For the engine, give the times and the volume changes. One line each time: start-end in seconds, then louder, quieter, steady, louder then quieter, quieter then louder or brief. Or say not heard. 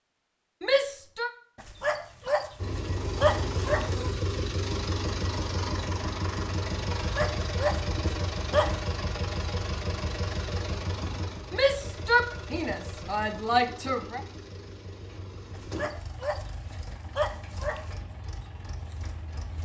2.5-19.6 quieter.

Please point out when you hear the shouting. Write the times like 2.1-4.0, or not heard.
0.6-1.3, 11.5-14.2.